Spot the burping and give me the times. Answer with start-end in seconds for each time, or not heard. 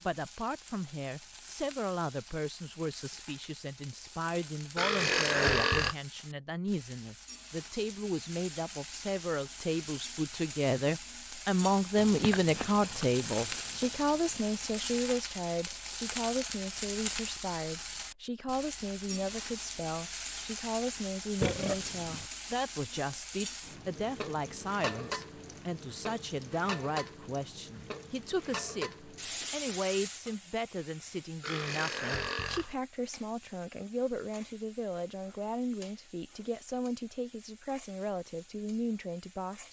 4.8-6.0, 21.4-22.3, 31.4-32.8.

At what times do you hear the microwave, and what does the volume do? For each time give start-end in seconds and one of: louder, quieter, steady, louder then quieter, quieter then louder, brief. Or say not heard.
not heard.